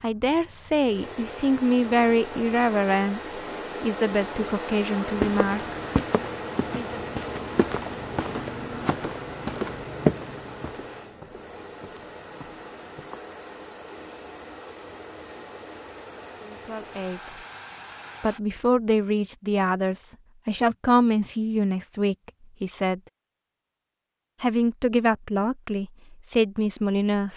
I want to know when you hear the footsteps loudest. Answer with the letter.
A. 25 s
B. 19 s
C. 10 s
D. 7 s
C.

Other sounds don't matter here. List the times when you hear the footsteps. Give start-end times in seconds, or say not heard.
5.1-13.2.